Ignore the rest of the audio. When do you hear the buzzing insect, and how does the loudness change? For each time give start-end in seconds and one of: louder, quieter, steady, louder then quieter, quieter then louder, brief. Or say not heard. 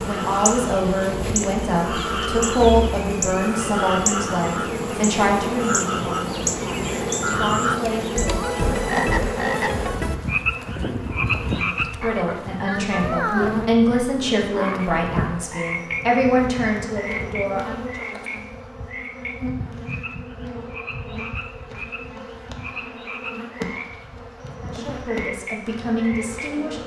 0.0-26.8 quieter.